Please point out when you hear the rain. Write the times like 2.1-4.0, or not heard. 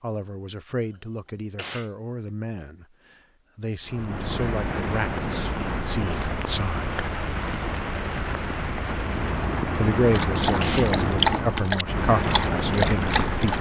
3.9-13.5.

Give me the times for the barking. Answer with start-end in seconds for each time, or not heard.
10.1-13.5.